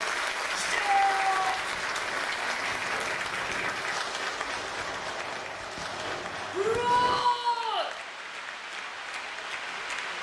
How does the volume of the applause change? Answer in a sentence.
The volume of the applause goes down.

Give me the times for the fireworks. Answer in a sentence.
The fireworks can be heard from 1.3 to 7.2 s.